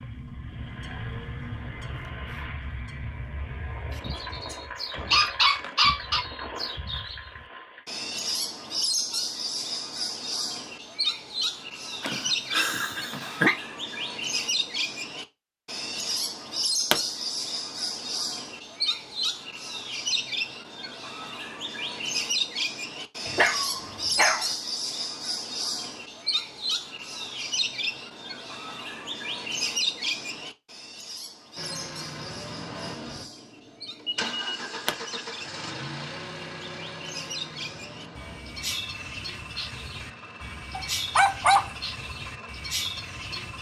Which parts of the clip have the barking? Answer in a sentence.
The barking can be heard from 4.5 to 6.2 s, from 12.0 to 13.6 s, from 23.2 to 24.6 s and from 40.8 to 41.7 s.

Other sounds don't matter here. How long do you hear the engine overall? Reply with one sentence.
You can hear the engine for 20 seconds altogether.